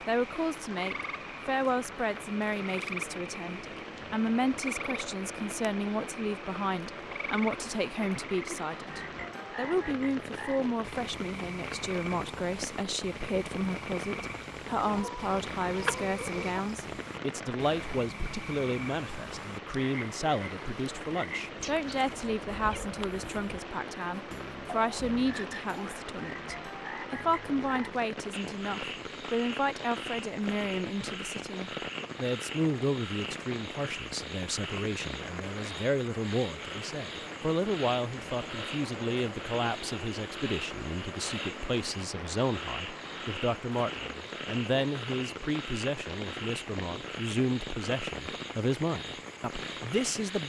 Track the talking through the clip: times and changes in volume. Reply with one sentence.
The talking can be heard from 0.1 to 50.4 s, at a steady volume.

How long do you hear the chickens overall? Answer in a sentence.
The chickens can be heard for 2 seconds in total.